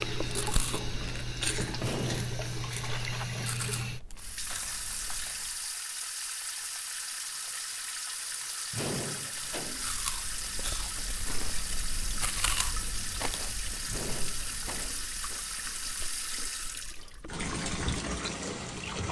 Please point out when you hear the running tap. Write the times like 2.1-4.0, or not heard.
0.0-19.0.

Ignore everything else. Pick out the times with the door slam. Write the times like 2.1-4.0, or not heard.
1.8-2.4, 8.7-9.9, 13.8-15.1.